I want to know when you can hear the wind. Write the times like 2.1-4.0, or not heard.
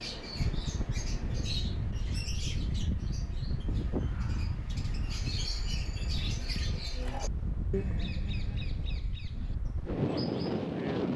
0.0-11.1.